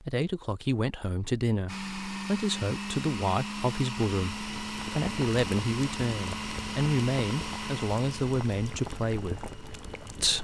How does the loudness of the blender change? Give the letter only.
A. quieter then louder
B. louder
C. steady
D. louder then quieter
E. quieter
E.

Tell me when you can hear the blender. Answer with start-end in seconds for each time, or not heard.
1.6-10.3.